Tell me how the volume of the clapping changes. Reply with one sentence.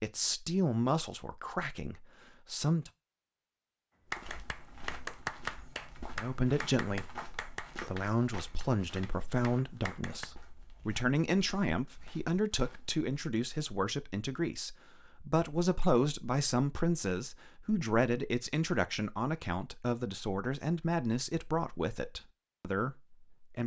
The loudness of the clapping goes down.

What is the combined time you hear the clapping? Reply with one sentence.
The clapping can be heard for 6 seconds in total.